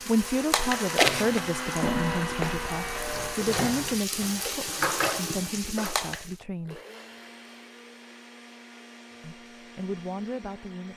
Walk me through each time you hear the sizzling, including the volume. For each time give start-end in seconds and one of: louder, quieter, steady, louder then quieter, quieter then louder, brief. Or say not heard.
0.0-6.3 quieter then louder.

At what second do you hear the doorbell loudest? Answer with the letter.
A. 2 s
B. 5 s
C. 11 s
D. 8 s
A.